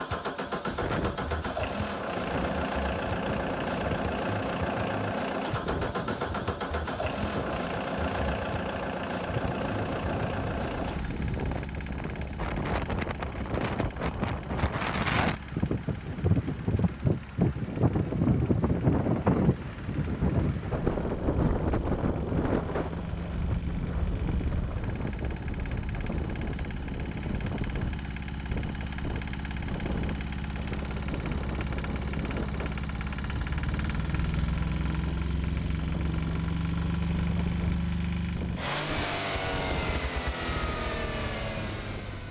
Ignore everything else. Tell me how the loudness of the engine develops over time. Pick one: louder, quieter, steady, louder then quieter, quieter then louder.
quieter then louder.